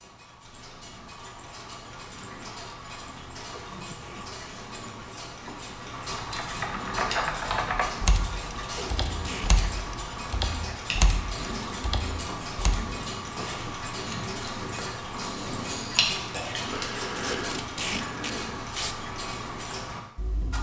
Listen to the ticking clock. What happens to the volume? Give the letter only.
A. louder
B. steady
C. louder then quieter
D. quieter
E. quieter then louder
A.